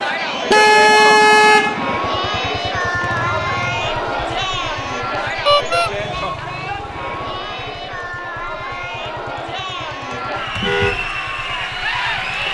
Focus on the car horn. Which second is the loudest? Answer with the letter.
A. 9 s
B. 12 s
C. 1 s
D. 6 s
C.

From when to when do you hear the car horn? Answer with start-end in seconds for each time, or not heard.
0.5-1.8, 5.5-5.9, 10.6-11.0.